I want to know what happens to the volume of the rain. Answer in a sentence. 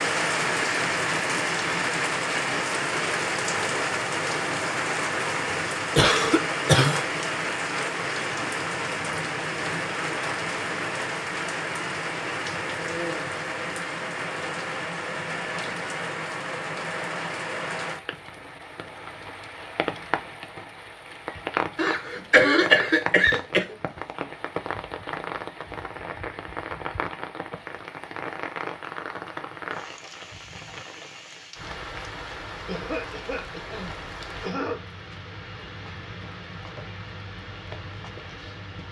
The volume of the rain goes down.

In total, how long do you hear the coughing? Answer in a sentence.
You can hear the coughing for 5 seconds altogether.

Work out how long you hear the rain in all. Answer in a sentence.
The rain can be heard for 39 seconds in total.